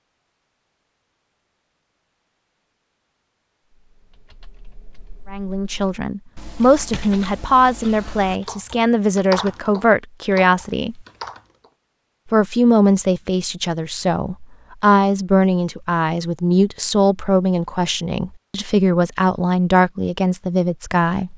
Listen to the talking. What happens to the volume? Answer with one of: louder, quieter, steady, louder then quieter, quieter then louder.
steady.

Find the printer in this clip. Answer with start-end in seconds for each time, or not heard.
not heard.